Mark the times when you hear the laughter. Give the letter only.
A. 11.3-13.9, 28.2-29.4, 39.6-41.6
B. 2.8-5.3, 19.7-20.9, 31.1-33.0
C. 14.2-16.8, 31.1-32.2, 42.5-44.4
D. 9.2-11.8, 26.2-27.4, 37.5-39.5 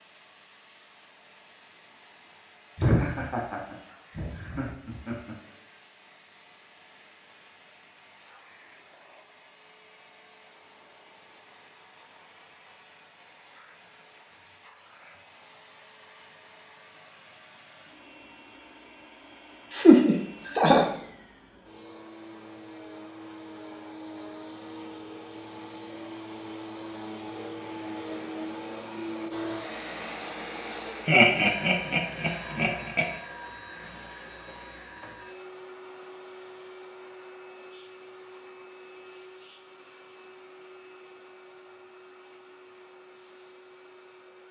B.